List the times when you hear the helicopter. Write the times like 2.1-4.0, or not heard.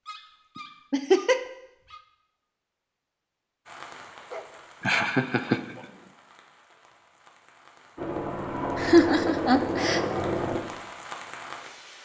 8.0-10.6.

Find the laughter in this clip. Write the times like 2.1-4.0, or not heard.
0.9-1.4, 4.8-5.8, 8.8-10.0.